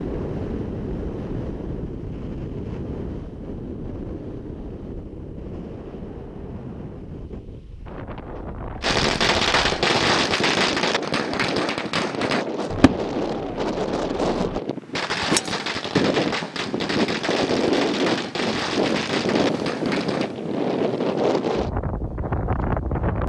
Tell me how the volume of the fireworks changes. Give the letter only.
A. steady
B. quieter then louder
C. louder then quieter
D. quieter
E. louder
D.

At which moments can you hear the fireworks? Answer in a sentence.
You can hear the fireworks from 8.8 to 20.4 s.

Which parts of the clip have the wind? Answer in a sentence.
The wind can be heard from 0.0 to 23.2 s.